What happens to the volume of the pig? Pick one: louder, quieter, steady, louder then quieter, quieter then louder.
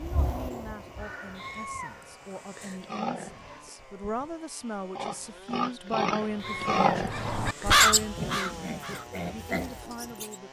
louder then quieter.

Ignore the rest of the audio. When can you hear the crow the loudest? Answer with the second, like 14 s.
8 s.